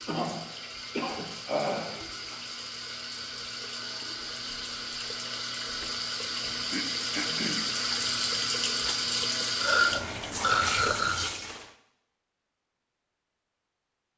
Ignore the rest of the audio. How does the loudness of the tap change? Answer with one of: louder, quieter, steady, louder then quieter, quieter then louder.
louder.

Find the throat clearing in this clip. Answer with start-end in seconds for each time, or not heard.
0.1-2.4, 6.7-7.7, 9.6-11.3.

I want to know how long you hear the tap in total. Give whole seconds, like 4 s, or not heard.
12 s.